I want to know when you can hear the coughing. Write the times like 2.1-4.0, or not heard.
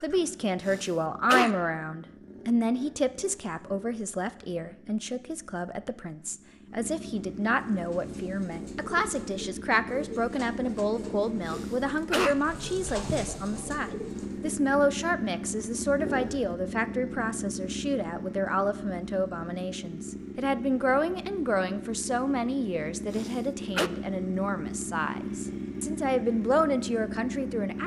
0.7-1.5, 11.4-12.3, 23.1-23.9.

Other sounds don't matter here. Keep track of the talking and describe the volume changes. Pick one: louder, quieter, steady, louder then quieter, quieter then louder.
steady.